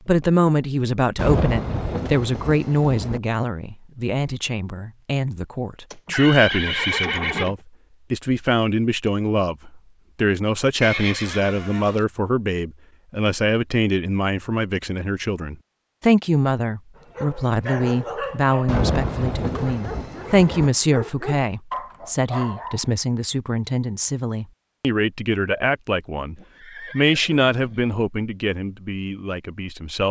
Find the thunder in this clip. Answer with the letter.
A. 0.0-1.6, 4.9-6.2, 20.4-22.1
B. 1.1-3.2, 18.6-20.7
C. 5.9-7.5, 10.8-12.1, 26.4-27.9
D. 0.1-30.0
B.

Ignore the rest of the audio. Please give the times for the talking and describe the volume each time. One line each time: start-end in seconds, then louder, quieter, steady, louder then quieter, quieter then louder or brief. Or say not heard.
0.1-30.0 steady.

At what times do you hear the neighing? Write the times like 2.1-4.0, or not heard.
5.9-7.5, 10.8-12.1, 26.4-27.9.